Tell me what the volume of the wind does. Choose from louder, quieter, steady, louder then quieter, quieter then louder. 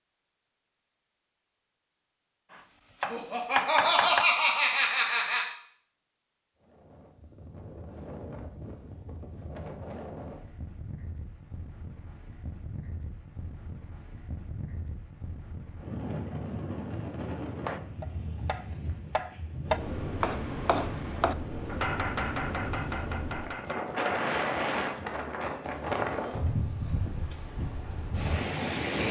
louder.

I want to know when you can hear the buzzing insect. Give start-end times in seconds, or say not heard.
not heard.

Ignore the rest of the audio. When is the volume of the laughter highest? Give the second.
4 s.